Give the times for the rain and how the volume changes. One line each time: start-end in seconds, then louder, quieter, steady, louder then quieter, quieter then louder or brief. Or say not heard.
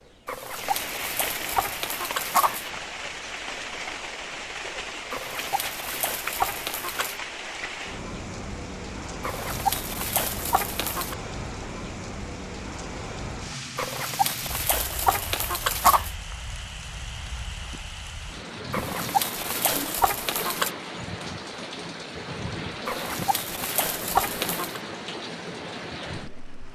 0.0-26.6 steady.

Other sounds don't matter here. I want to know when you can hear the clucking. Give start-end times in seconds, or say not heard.
0.2-2.7, 5.1-7.2, 9.2-11.2, 13.8-16.1, 18.7-20.7, 22.9-24.8.